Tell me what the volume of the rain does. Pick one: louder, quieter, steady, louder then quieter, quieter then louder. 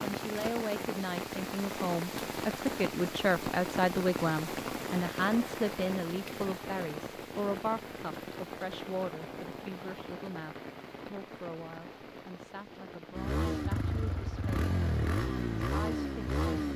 quieter.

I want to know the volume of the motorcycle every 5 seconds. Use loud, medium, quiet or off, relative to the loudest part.
off, off, loud, loud.